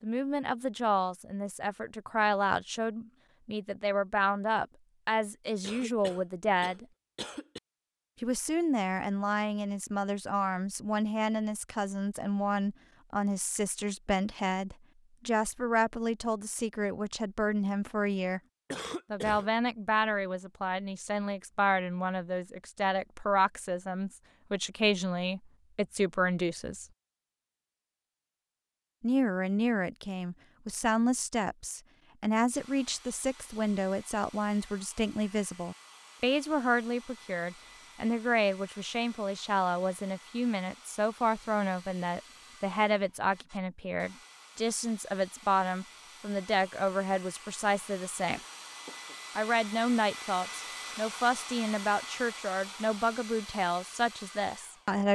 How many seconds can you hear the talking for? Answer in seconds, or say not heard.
50 s.